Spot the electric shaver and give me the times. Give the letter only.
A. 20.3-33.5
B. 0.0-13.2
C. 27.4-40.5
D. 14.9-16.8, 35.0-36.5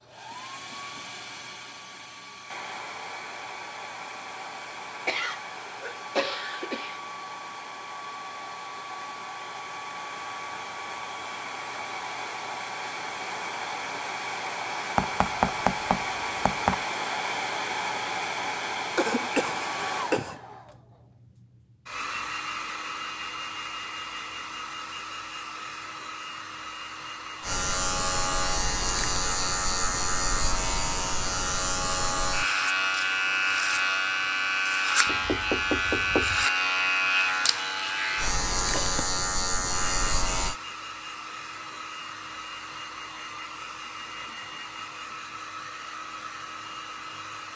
C.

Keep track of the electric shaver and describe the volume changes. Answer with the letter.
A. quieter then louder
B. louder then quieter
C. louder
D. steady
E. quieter
D.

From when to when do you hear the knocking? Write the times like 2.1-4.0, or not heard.
14.9-16.8, 35.0-36.5.